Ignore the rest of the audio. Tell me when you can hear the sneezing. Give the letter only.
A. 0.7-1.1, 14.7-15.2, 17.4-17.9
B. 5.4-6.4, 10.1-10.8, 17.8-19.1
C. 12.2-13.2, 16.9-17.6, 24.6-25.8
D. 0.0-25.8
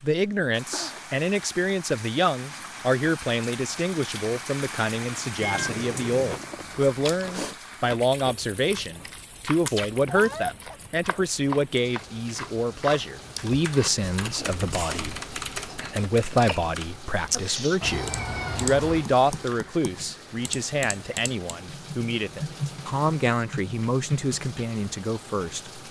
A.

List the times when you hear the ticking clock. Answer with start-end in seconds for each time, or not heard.
not heard.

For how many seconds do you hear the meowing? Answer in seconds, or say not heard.
3 s.